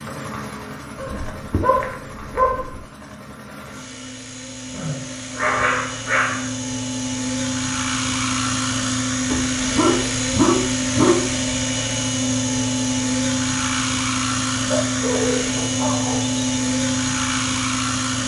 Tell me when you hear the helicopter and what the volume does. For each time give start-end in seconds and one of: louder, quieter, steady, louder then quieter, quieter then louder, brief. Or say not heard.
0.0-18.2 louder.